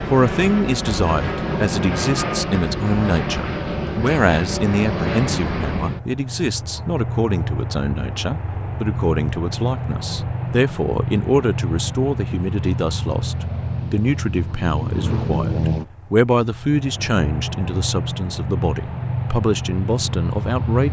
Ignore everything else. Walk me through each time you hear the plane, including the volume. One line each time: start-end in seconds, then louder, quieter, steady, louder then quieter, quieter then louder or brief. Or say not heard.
0.0-20.8 steady.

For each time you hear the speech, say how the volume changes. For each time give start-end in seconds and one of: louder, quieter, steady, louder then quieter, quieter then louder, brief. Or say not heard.
0.1-20.8 steady.